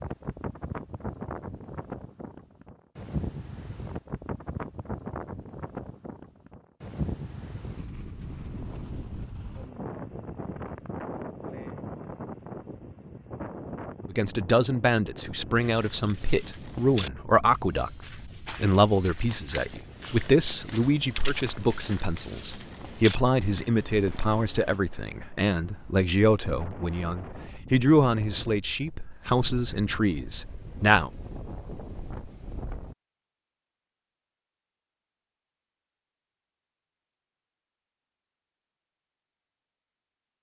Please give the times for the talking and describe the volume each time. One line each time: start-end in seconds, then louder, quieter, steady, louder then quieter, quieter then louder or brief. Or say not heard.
14.1-31.1 steady.